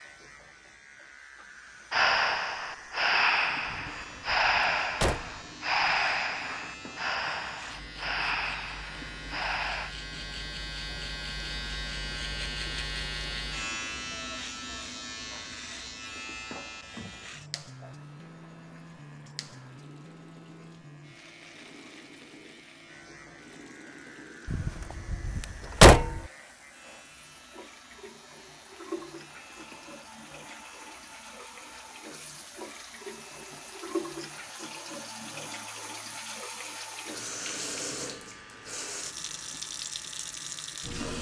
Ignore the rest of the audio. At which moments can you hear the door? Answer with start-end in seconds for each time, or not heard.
3.6-5.4, 24.4-26.2.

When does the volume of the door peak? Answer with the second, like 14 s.
26 s.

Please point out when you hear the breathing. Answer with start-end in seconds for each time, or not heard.
1.9-9.9.